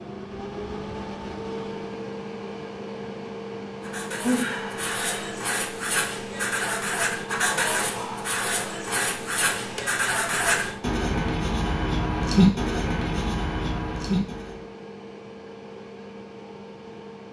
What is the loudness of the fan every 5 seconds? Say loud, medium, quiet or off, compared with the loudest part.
loud, loud, medium, medium.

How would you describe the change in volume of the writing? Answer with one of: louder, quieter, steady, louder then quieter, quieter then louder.
louder.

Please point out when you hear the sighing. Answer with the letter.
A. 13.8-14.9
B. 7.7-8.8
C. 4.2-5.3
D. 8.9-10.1
C.